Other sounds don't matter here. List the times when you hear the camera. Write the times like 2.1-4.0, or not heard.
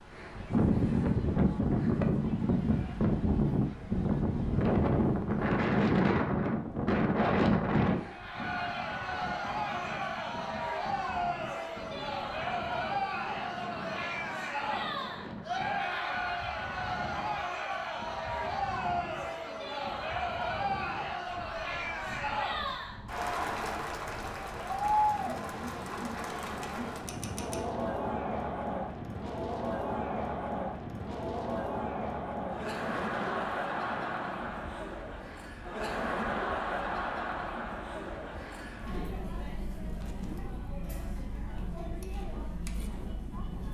27.1-27.6.